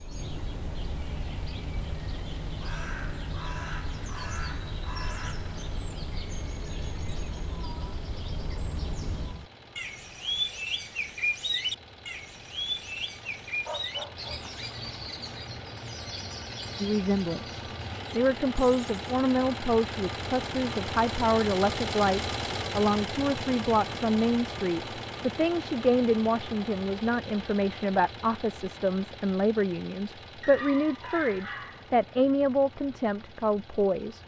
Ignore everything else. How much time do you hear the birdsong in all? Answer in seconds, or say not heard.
19 s.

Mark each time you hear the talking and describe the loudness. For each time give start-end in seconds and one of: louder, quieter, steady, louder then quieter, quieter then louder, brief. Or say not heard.
16.8-34.2 steady.